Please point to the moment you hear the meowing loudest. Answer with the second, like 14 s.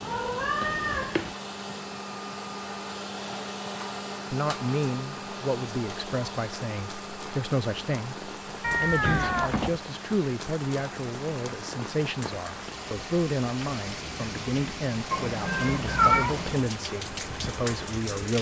16 s.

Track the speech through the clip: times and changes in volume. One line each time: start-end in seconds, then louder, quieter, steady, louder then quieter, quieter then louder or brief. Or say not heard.
4.3-18.3 steady.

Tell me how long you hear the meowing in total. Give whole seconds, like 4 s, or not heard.
4 s.